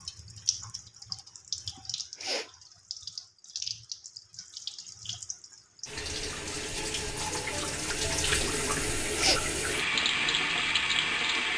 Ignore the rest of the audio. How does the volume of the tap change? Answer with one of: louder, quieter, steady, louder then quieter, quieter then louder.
louder.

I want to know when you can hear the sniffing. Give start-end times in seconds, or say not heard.
1.8-2.5, 8.8-9.4.